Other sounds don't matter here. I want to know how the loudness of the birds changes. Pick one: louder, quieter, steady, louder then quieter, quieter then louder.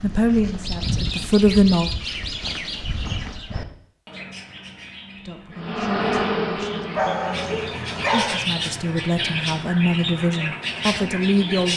quieter then louder.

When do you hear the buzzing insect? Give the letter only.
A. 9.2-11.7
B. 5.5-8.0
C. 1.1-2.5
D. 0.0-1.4
B.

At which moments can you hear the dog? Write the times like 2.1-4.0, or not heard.
7.0-8.3.